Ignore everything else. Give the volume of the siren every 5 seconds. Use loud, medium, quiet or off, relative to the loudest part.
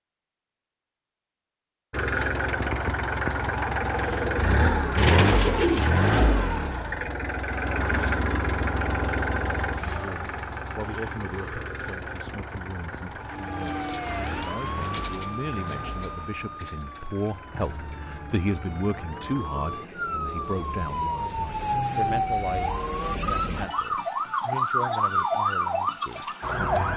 off, off, medium, quiet, loud, loud.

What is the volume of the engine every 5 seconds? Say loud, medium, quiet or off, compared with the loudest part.
loud, loud, medium, quiet, quiet, off.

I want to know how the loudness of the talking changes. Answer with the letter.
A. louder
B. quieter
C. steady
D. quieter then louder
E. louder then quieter
E.